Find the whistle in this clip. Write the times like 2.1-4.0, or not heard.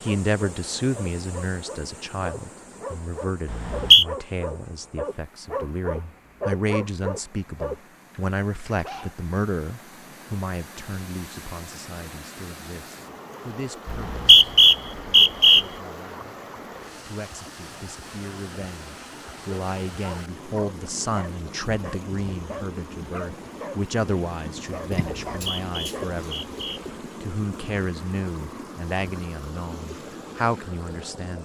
3.5-4.0, 13.8-15.7, 25.3-26.8.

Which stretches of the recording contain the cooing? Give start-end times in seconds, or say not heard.
24.9-26.9.